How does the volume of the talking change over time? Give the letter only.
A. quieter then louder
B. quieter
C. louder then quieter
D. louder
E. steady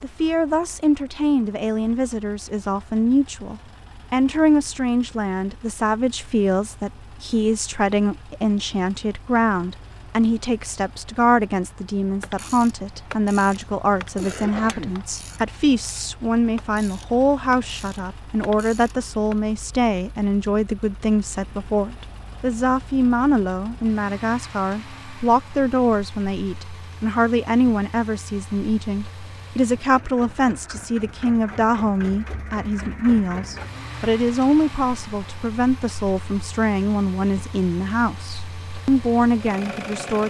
E.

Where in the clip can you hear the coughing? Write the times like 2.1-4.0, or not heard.
14.2-15.0.